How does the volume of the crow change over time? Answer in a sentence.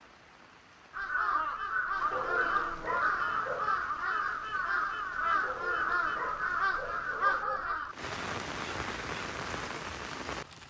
The loudness of the crow goes down.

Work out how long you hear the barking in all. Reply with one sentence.
You can hear the barking for 4 seconds altogether.